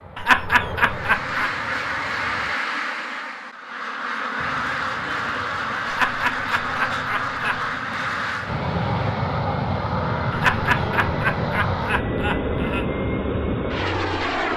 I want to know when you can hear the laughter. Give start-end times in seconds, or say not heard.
0.1-1.5, 5.8-7.7, 10.3-12.8.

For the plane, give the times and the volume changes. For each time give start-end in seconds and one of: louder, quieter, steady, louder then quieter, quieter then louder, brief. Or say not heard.
0.0-2.5 brief
4.3-14.5 louder.